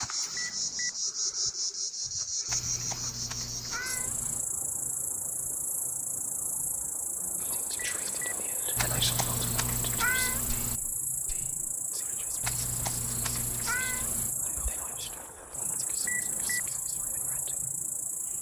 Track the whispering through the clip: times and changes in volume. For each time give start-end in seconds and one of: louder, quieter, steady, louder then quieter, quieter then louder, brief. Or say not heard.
7.4-17.6 quieter.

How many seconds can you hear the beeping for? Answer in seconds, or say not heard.
2 s.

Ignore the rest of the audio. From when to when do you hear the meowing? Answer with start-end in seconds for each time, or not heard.
2.5-4.5, 8.8-10.8, 12.4-14.3.